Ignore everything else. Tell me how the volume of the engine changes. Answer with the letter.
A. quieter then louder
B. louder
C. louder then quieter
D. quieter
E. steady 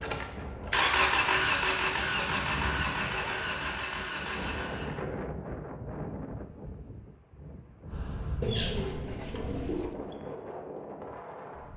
D.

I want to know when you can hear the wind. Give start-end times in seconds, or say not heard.
0.0-11.7.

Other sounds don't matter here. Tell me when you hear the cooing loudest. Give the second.
9 s.